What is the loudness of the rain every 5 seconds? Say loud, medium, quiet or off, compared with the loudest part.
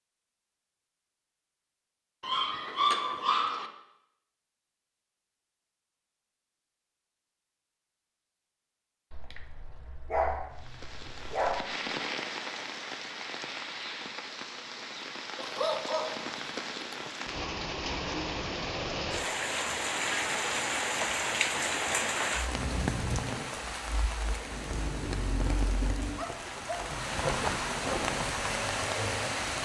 off, off, medium, loud, loud, loud.